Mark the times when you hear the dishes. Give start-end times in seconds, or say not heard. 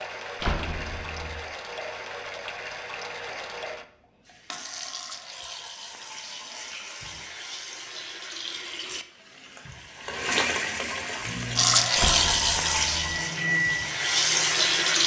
not heard.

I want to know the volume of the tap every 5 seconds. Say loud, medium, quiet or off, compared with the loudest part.
quiet, quiet, loud.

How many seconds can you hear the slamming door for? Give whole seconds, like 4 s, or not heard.
2 s.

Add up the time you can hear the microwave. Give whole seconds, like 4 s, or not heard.
4 s.